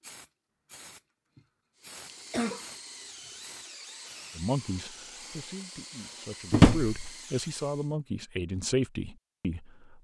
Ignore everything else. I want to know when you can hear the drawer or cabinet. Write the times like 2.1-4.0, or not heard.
6.5-7.1.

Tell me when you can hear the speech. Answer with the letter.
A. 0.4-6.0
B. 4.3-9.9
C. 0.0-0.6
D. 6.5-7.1
B.